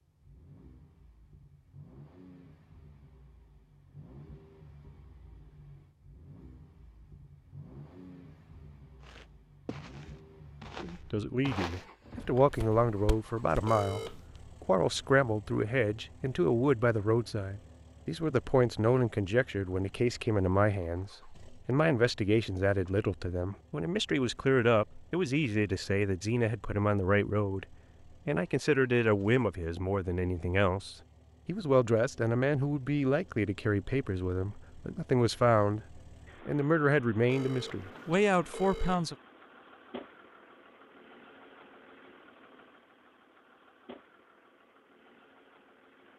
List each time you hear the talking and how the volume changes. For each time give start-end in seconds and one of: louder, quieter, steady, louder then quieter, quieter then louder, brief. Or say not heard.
10.8-39.1 steady.